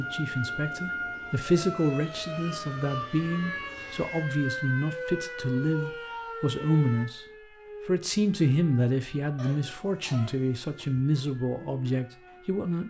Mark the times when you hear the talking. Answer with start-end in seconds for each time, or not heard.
0.0-7.2, 7.8-12.8.